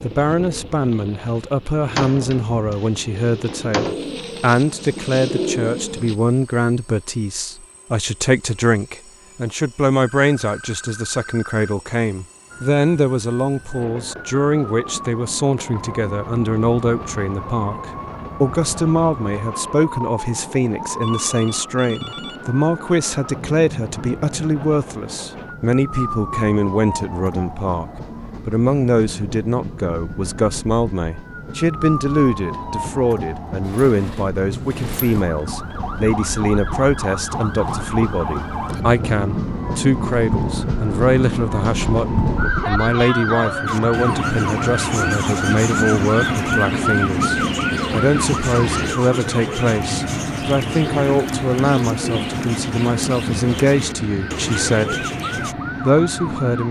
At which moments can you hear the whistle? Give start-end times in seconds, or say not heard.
not heard.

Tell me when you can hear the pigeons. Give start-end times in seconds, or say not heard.
0.0-6.2, 43.6-55.5.